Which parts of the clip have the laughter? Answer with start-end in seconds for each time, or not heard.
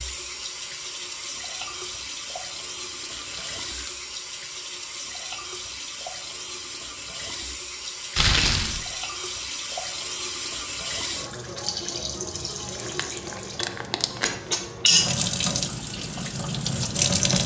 not heard.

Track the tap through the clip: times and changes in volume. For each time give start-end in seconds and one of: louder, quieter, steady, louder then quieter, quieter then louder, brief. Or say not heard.
0.0-17.4 louder.